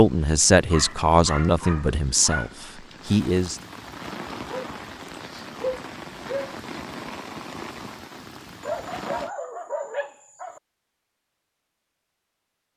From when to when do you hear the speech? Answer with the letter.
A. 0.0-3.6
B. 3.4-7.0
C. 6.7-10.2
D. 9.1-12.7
A.